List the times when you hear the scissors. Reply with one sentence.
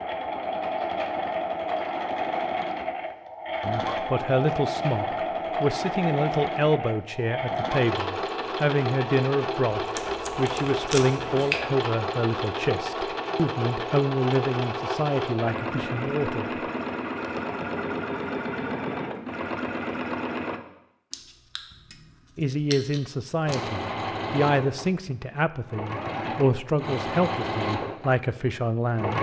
You can hear the scissors from 11.2 to 11.7 s and from 21.1 to 23.6 s.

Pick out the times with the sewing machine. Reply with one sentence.
You can hear the sewing machine from 0.0 to 20.6 s and from 23.4 to 29.1 s.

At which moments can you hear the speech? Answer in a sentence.
The speech can be heard from 3.6 to 16.5 s and from 22.4 to 29.1 s.